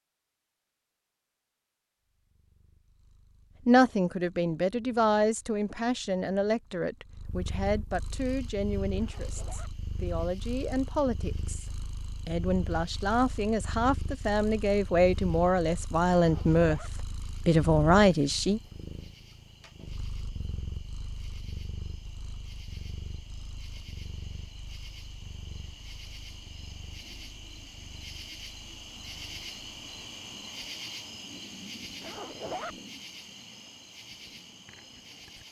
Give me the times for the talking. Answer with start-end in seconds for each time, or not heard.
3.6-11.7, 12.2-18.6.